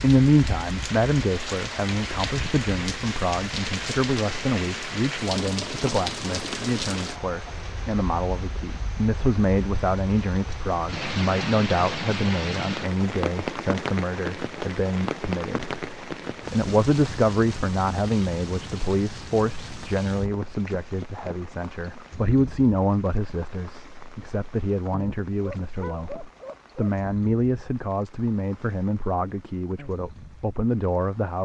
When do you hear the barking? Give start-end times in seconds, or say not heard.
25.4-26.9.